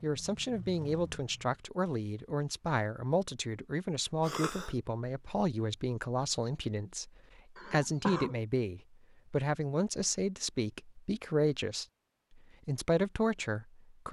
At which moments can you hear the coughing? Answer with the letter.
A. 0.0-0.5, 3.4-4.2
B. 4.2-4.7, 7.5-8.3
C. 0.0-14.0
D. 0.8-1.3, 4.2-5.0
B.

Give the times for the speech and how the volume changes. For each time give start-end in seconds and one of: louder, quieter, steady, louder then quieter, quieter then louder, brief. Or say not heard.
0.0-14.0 steady.